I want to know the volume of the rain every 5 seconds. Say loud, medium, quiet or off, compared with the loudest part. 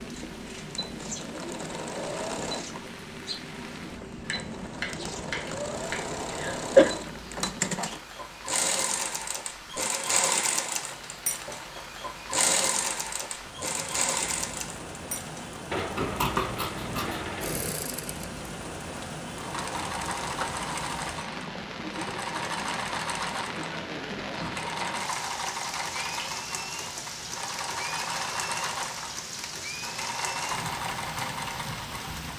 medium, medium, medium, loud, loud, loud, loud.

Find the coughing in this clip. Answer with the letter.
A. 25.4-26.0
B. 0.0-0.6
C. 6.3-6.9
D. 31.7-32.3
C.